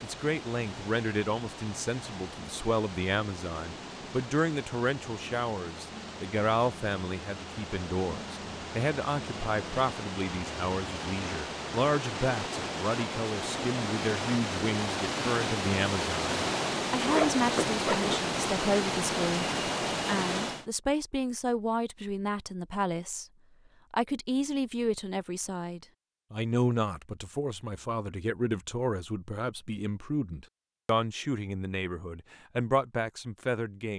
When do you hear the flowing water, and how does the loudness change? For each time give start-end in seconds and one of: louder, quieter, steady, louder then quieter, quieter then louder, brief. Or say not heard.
0.0-20.6 louder.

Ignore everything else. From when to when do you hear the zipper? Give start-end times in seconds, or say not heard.
17.0-18.2.